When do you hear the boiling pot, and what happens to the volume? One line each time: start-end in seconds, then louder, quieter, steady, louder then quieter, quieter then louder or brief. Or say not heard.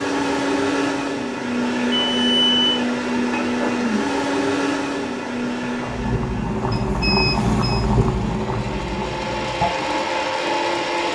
0.0-11.1 louder then quieter.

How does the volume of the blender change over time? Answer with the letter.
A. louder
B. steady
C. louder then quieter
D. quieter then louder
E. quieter
D.